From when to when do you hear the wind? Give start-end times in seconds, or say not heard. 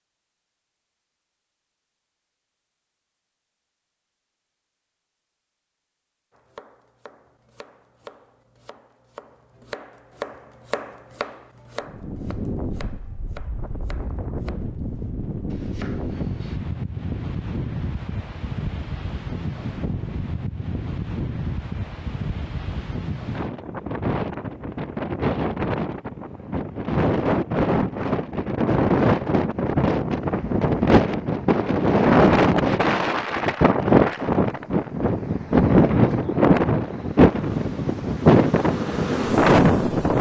11.8-40.1.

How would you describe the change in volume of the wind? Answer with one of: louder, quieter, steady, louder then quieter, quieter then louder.
louder.